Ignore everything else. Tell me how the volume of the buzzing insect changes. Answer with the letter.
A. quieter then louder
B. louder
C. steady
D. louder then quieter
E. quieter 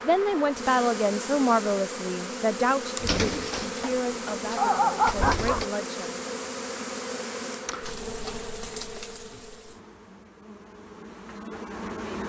E.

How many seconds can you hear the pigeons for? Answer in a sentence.
The pigeons can be heard for 3 seconds in total.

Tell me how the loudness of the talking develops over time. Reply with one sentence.
The loudness of the talking goes down.